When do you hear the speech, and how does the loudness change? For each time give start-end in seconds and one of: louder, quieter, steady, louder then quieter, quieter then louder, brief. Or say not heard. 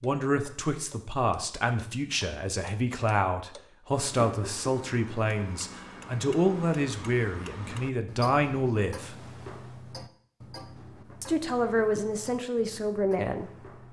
0.0-9.2 steady
11.2-13.7 brief.